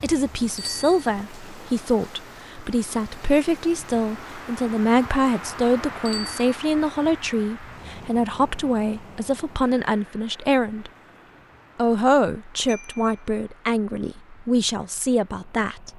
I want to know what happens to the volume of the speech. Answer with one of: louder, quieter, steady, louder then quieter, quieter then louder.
steady.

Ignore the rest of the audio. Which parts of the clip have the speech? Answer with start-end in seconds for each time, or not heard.
0.0-10.9, 11.8-15.9.